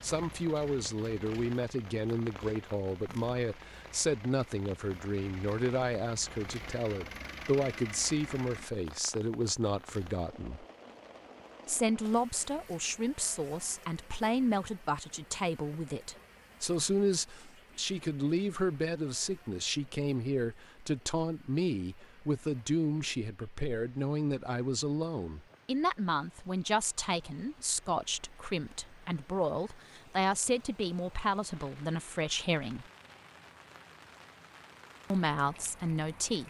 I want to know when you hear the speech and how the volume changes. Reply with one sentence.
You can hear the speech from 0.0 to 10.7 s, at a steady volume; from 11.7 to 32.9 s, at a steady volume; and briefly from 35.1 to 36.4 s.